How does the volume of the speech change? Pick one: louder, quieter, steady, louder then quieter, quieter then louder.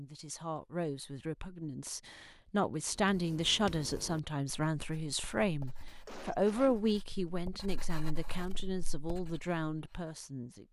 louder then quieter.